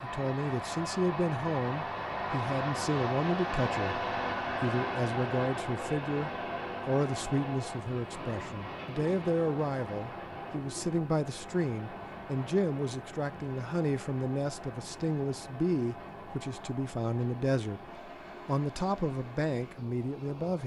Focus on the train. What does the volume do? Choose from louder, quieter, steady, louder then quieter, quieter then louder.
quieter.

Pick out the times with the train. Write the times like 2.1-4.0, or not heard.
0.0-20.6.